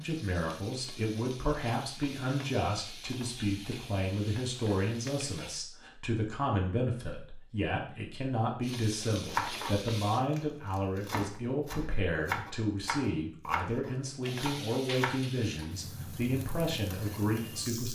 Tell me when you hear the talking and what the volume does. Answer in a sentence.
The talking can be heard from 0.0 to 17.9 s, at a steady volume.